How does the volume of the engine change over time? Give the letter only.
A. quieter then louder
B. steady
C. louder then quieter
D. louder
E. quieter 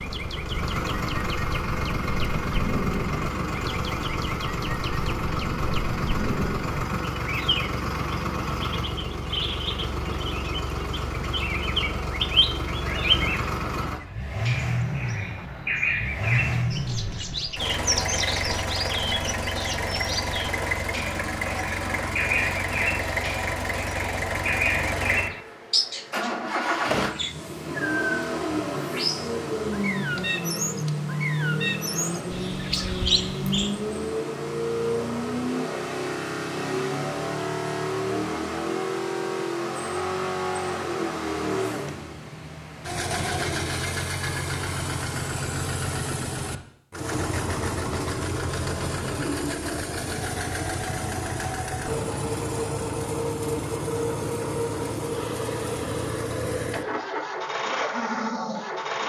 B.